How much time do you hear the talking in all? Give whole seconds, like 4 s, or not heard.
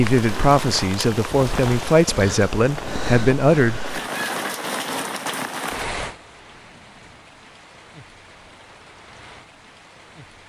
4 s.